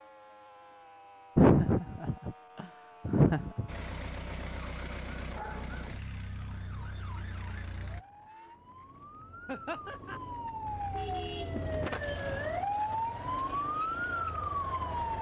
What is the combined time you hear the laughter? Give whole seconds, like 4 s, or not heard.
3 s.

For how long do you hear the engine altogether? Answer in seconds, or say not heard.
6 s.